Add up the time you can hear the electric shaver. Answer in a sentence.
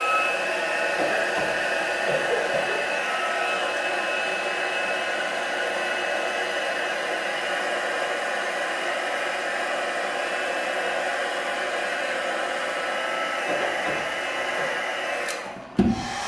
You can't hear the electric shaver here.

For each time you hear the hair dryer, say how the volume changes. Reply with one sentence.
The hair dryer can be heard from 0.0 to 16.2 s, at a steady volume.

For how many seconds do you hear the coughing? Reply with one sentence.
You can hear the coughing for 3 seconds altogether.